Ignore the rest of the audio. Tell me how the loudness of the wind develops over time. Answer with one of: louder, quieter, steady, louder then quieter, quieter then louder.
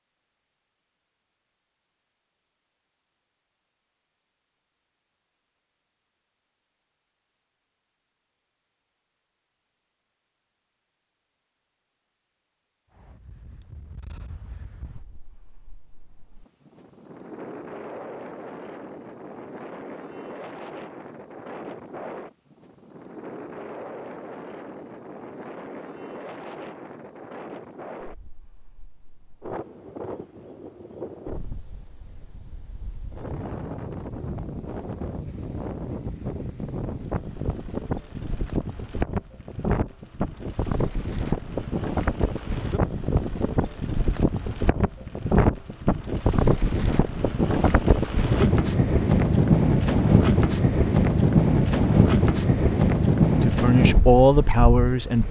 louder.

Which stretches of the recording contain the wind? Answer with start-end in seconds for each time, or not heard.
12.9-55.2.